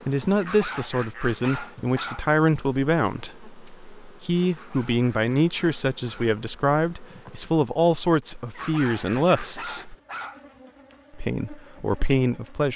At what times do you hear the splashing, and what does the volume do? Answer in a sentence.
You can't hear the splashing here.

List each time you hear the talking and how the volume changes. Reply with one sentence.
You can hear the talking from 0.1 to 9.9 s, at a steady volume; and briefly from 11.2 to 12.7 s.